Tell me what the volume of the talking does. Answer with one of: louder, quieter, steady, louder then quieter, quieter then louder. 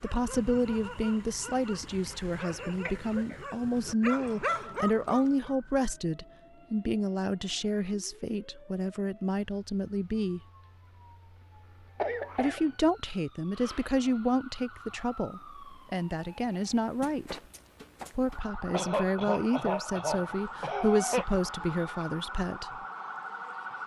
steady.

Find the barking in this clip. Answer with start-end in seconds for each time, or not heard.
0.0-5.5.